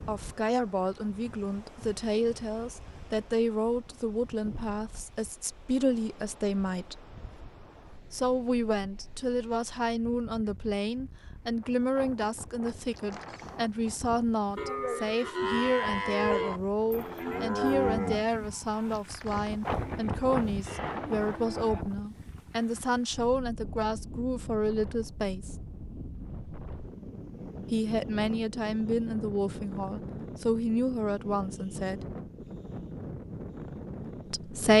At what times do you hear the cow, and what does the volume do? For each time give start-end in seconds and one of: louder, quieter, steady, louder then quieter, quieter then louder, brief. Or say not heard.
14.6-21.9 quieter then louder.